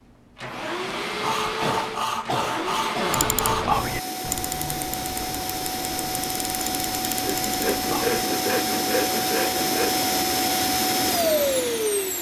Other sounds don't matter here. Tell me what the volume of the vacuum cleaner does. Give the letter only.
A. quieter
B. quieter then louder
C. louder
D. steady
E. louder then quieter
C.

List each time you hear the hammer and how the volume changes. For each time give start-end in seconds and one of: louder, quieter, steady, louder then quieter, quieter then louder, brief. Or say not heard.
not heard.